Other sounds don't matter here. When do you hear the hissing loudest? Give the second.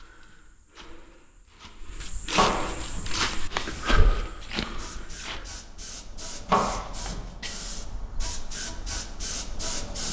10 s.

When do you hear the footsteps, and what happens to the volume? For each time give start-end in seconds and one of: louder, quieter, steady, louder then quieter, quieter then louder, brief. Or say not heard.
0.0-5.5 louder then quieter.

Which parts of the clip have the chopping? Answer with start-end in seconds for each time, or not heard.
2.4-3.1, 6.5-7.2.